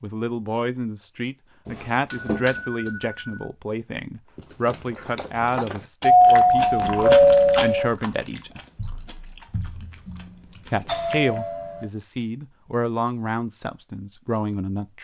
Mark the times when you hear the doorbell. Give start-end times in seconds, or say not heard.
2.1-3.2, 6.0-7.9, 10.8-11.8.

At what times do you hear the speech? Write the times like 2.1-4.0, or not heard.
0.0-8.6, 10.7-15.0.